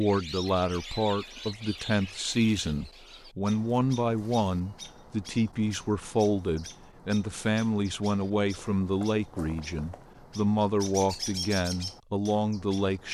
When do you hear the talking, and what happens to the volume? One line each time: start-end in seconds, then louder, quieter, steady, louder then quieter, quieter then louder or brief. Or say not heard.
0.0-13.0 steady.